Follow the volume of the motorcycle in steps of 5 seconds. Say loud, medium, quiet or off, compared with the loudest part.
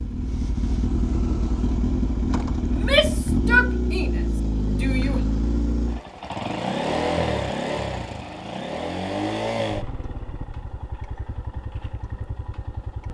loud, loud, quiet.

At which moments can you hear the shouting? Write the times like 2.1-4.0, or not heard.
2.7-5.2.